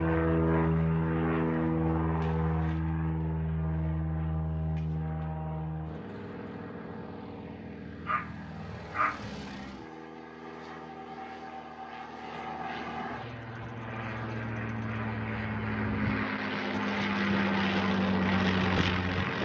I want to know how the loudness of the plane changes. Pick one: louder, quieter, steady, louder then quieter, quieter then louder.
quieter then louder.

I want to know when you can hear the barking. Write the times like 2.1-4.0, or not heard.
8.1-9.3.